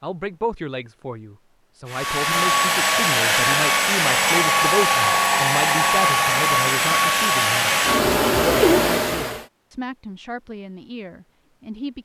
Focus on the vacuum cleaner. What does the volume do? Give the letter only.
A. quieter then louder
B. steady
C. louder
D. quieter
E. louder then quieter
B.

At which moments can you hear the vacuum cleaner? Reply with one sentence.
You can hear the vacuum cleaner from 1.9 to 9.4 s.